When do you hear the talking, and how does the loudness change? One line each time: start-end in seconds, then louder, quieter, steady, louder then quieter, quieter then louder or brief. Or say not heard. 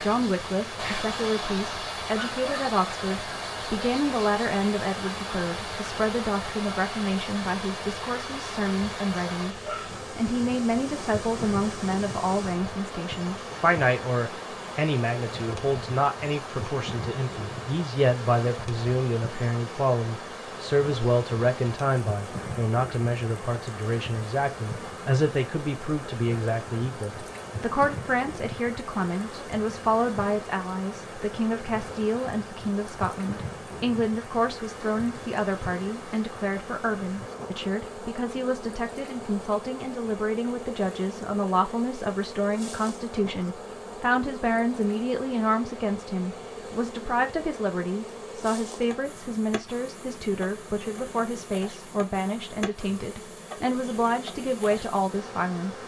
0.0-55.8 steady.